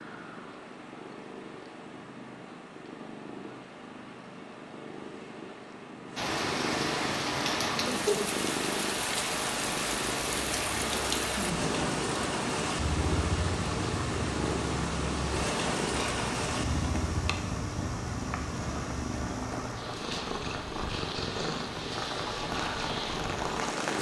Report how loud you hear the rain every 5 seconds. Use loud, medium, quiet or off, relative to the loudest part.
off, loud, loud, loud, medium.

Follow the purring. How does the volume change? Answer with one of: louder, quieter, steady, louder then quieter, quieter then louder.
louder.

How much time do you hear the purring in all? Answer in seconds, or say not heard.
24 s.